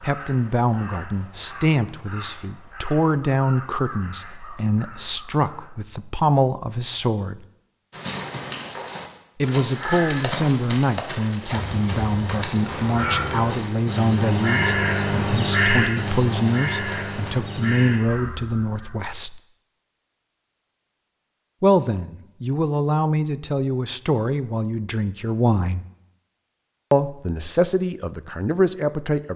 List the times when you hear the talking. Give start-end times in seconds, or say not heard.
0.0-7.4, 9.4-19.4, 21.6-25.9, 26.9-29.3.